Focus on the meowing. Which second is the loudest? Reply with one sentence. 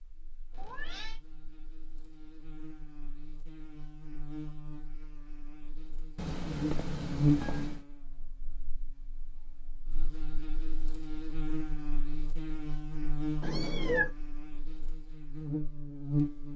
The volume of the meowing peaks at 14 seconds.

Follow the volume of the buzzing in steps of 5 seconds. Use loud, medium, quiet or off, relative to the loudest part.
quiet, loud, medium, loud.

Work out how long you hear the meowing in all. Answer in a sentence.
The meowing can be heard for 3 seconds in total.